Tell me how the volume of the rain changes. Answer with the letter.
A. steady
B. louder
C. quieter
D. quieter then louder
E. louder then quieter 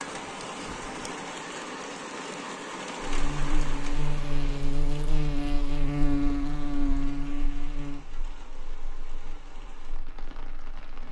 C.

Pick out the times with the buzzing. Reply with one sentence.
You can hear the buzzing from 3.0 to 11.0 s.